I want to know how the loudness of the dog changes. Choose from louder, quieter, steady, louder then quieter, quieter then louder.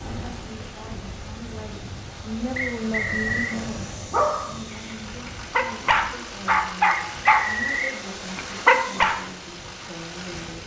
louder.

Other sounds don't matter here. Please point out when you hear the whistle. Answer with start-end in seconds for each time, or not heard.
2.5-3.6, 6.8-8.0.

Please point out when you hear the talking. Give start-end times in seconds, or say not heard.
0.1-10.6.